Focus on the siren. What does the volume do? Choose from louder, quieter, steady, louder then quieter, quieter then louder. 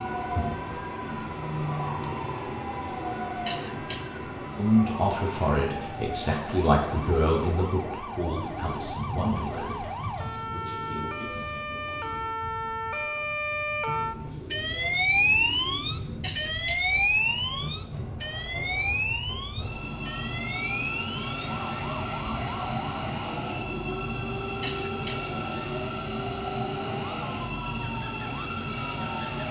louder then quieter.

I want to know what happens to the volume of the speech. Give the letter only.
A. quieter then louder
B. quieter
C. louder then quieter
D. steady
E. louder
B.